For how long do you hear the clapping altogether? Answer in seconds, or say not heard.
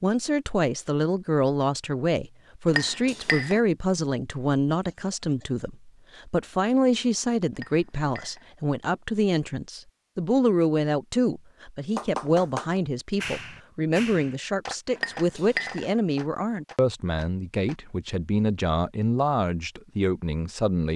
6 s.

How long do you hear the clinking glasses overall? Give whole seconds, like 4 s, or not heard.
3 s.